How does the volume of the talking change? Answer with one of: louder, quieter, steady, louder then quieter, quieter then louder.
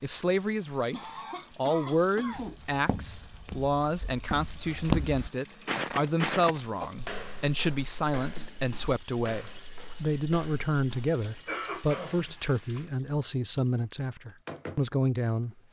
steady.